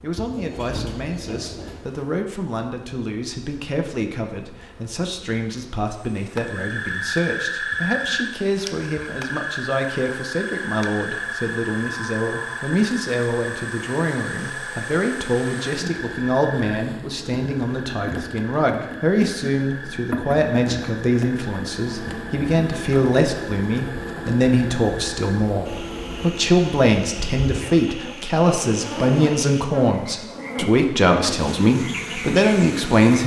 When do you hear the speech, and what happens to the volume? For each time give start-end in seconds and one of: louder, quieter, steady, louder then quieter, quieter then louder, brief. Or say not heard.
0.0-33.2 louder.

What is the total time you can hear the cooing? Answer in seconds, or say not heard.
2 s.